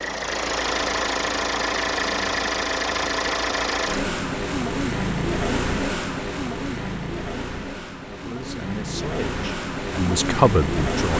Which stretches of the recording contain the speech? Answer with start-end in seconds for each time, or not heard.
8.1-11.1.